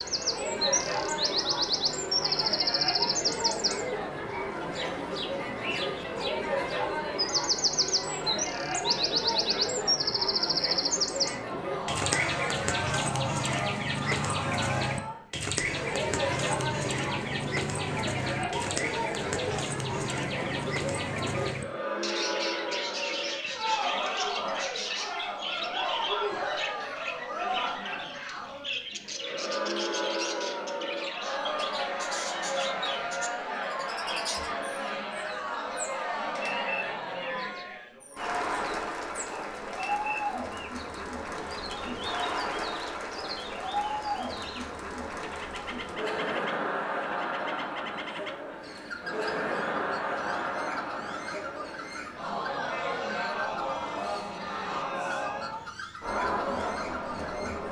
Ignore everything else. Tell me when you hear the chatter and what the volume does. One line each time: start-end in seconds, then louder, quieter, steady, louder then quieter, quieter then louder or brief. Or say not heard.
0.0-57.6 steady.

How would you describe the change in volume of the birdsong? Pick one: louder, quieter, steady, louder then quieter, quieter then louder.
quieter.